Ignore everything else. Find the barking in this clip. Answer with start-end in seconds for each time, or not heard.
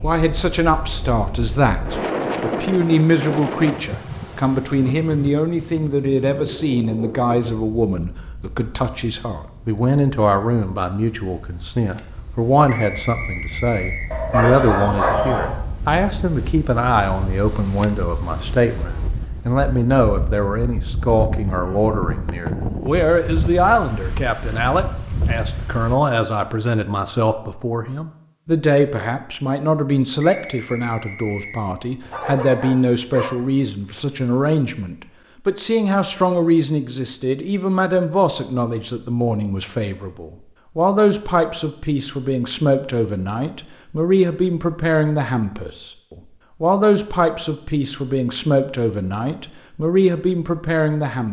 14.1-15.6, 32.0-33.3.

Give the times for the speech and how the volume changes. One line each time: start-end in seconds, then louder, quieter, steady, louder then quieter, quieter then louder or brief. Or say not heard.
0.0-51.2 steady.